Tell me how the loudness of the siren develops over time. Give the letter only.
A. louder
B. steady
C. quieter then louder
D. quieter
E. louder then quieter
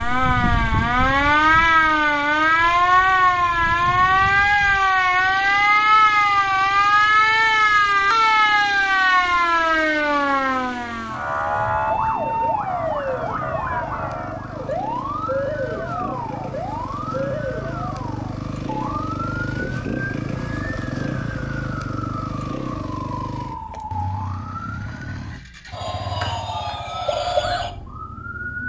D.